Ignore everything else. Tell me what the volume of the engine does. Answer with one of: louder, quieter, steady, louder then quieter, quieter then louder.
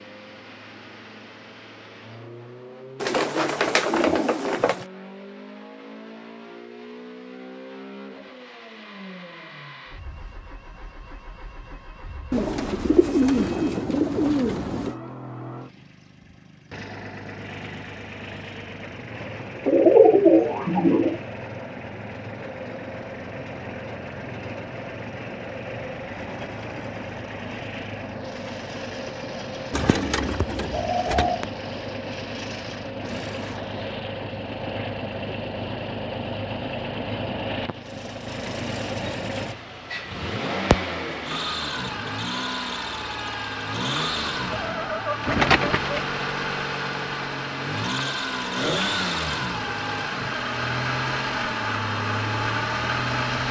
louder.